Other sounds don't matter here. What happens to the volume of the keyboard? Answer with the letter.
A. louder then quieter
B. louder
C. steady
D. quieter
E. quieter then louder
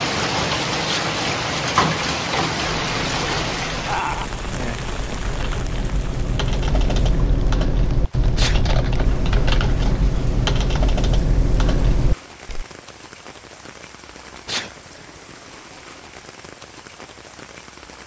B.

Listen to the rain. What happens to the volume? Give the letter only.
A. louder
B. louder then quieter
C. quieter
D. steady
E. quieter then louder
C.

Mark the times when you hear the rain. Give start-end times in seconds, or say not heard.
0.0-18.0.